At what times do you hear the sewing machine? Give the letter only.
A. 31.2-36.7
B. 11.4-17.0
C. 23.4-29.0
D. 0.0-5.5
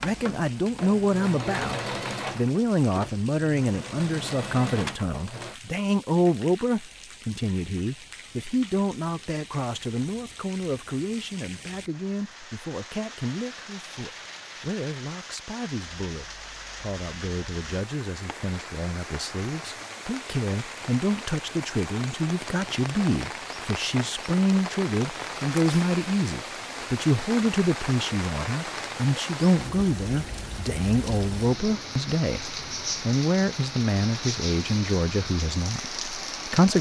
D.